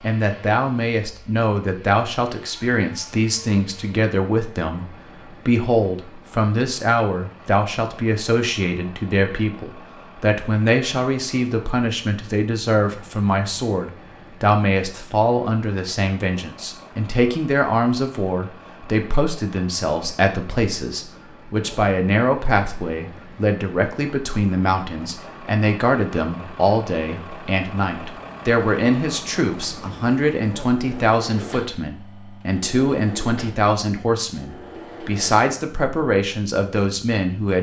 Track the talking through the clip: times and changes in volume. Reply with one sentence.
You can hear the talking from 0.0 to 37.5 s, at a steady volume.